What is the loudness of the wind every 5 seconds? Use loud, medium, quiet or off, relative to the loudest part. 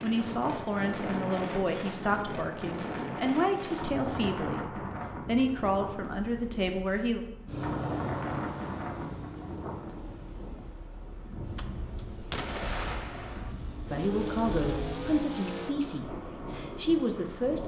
loud, loud, medium, medium.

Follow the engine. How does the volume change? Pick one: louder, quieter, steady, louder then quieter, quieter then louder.
quieter then louder.